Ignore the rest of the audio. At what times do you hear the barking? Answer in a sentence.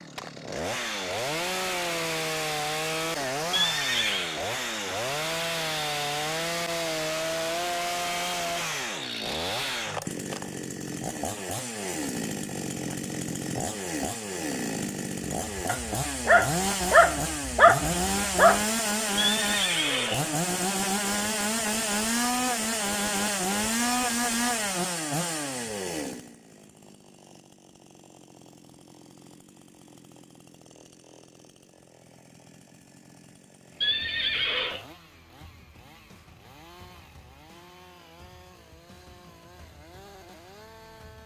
The barking can be heard from 15.5 to 18.6 s.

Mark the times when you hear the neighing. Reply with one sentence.
You can hear the neighing from 3.5 to 4.3 s, from 19.1 to 20.4 s and from 33.8 to 34.9 s.